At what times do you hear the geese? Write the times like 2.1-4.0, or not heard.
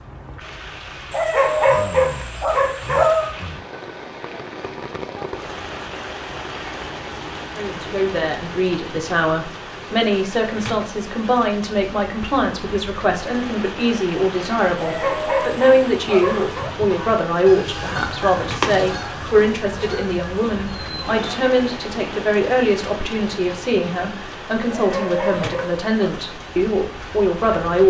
16.2-21.4.